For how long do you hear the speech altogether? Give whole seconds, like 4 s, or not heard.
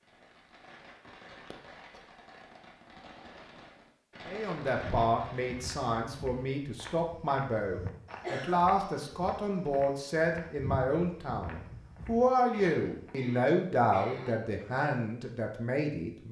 12 s.